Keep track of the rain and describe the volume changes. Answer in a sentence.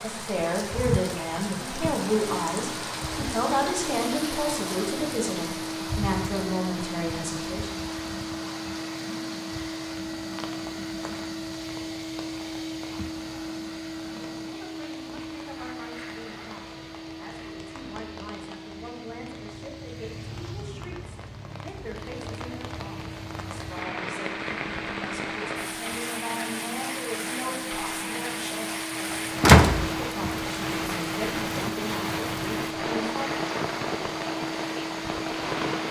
The volume of the rain goes down, then up.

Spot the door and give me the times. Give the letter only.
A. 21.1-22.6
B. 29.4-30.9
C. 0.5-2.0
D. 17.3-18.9
B.